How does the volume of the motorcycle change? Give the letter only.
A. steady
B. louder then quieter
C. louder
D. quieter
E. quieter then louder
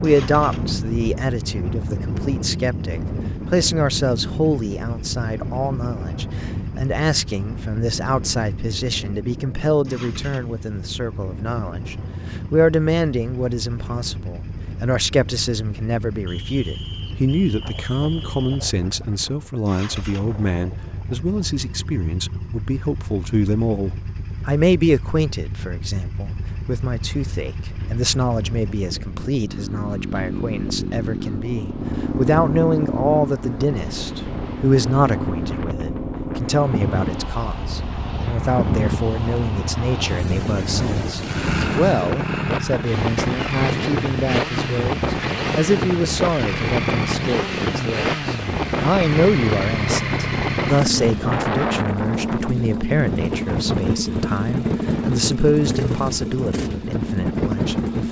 C.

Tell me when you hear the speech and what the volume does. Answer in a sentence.
You can hear the speech from 0.0 to 58.0 s, at a steady volume.